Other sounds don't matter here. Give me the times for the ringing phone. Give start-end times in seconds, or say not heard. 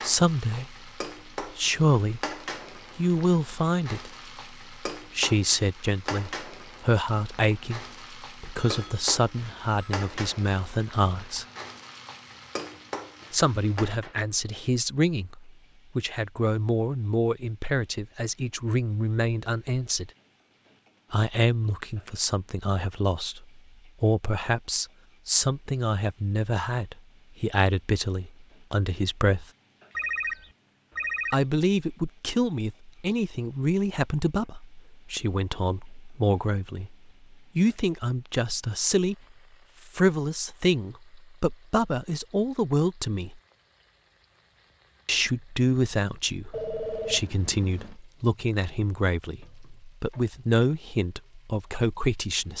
8.6-10.0, 29.9-31.4, 46.5-48.0.